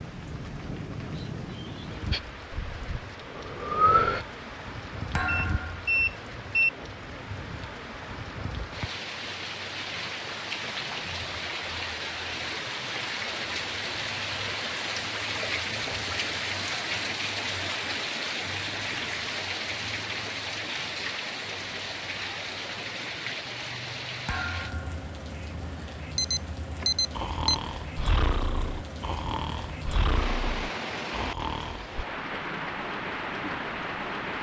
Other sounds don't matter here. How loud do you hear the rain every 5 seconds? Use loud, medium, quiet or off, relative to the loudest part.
medium, medium, loud, loud, loud, medium, loud.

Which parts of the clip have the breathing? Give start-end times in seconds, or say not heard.
2.1-4.2, 27.1-31.9.